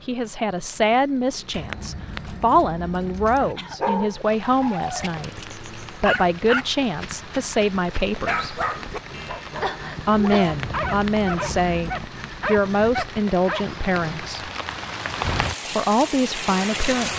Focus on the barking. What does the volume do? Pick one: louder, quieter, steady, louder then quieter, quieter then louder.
steady.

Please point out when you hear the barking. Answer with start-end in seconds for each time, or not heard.
3.4-13.7.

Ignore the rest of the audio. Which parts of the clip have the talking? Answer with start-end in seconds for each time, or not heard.
0.0-8.6, 10.1-14.5, 15.7-17.1.